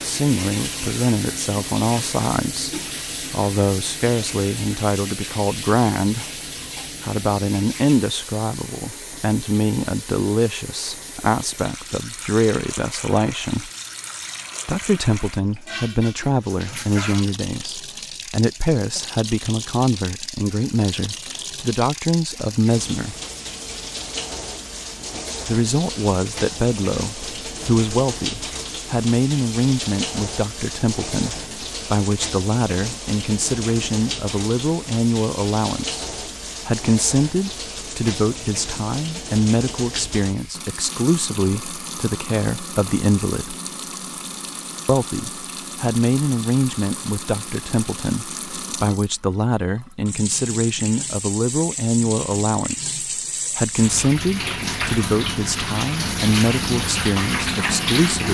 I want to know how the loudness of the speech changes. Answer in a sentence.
The volume of the speech stays about the same.